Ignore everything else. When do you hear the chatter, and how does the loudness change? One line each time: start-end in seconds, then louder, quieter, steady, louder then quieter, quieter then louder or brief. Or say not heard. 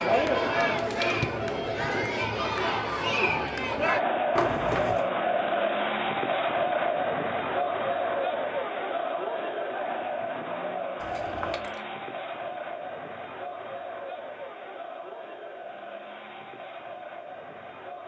0.0-18.0 quieter.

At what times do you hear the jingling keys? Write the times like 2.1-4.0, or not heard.
4.3-5.0, 11.0-11.8.